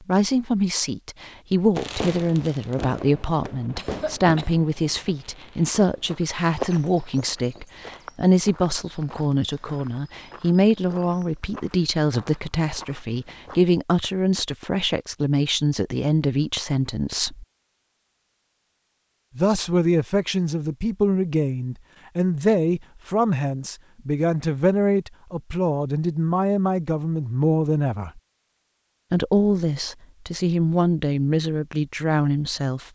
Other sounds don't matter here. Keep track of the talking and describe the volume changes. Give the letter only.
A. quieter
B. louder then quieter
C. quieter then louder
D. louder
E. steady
E.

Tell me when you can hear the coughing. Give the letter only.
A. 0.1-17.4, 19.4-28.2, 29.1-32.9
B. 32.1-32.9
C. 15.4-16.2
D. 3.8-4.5
D.